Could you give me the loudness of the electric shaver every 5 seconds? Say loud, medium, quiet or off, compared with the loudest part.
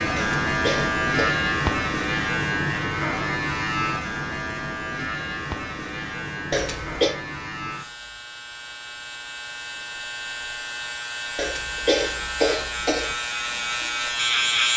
loud, medium, loud.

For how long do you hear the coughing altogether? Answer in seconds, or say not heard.
4 s.